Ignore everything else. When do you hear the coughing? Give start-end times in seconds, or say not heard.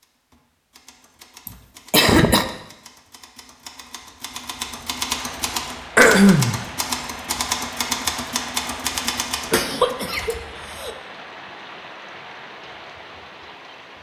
1.4-2.5, 6.0-6.6, 9.5-10.9.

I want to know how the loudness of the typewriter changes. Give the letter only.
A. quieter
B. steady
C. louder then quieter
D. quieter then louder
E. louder
E.